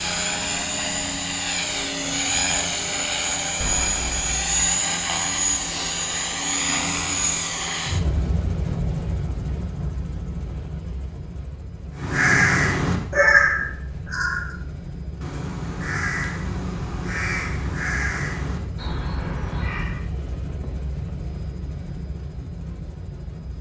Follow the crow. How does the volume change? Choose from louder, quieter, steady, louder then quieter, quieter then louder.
quieter.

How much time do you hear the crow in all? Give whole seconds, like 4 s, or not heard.
8 s.